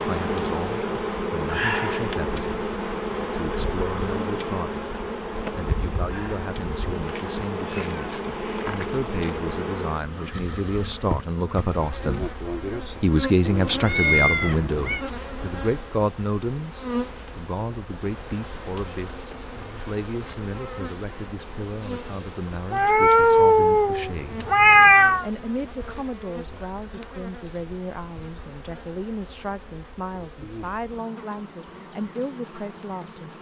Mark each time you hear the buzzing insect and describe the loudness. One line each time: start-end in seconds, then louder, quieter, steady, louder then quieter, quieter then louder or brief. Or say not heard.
0.0-33.3 quieter.